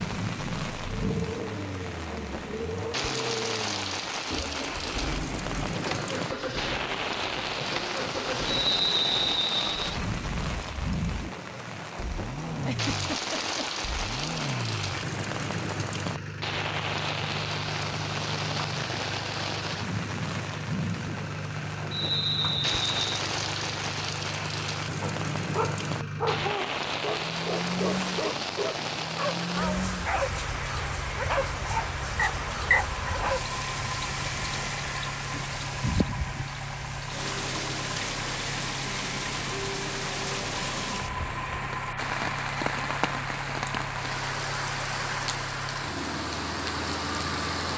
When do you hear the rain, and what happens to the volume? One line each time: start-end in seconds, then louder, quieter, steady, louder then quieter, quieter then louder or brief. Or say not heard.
0.0-47.7 steady.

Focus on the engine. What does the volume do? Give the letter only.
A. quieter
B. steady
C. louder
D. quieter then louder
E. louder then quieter
B.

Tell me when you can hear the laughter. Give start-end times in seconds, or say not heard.
12.7-13.7.